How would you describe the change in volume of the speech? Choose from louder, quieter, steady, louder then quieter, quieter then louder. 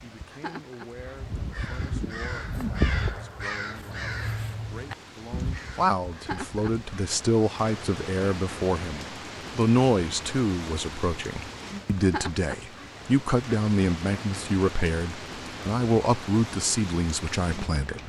louder.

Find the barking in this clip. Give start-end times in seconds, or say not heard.
not heard.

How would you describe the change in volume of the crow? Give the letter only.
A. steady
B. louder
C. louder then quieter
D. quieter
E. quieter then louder
C.